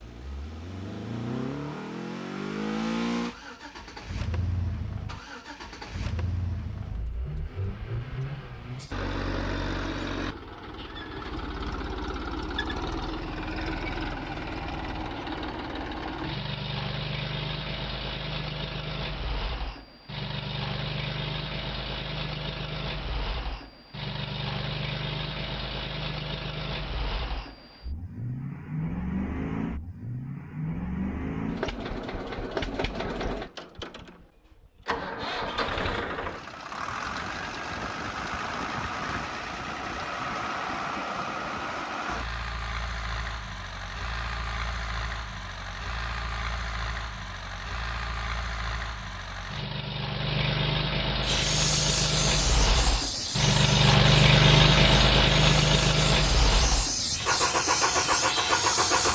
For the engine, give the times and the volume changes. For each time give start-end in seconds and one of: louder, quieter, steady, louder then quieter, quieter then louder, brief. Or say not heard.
0.0-59.0 louder.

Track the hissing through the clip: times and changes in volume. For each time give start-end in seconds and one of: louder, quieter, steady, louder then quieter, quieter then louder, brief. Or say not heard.
51.2-59.0 quieter then louder.